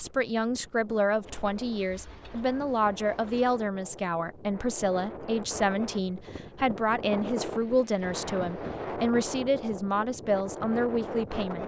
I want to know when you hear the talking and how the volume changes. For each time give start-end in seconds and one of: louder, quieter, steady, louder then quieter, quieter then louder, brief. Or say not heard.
0.0-11.6 steady.